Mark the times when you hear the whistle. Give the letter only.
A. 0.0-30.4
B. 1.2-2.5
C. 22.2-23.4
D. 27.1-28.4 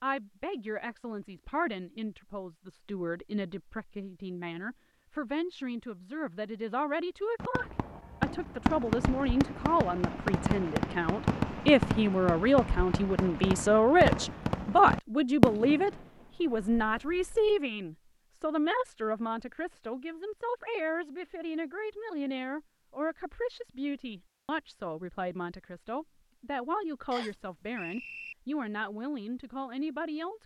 D.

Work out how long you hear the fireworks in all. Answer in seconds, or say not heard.
10 s.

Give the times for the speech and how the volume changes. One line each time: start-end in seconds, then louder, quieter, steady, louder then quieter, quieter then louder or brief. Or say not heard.
0.0-30.4 louder then quieter.